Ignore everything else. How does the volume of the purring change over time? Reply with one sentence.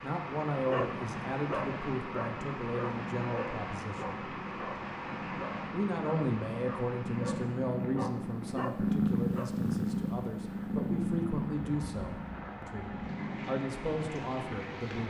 The loudness of the purring goes up, then down.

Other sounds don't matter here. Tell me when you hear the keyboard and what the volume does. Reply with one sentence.
You can't hear the keyboard here.